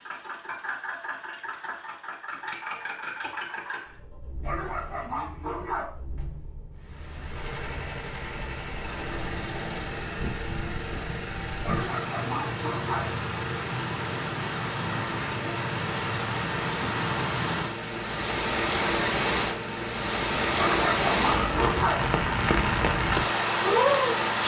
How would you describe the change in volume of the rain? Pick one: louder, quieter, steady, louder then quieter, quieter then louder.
louder.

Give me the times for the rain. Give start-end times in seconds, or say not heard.
6.8-24.4.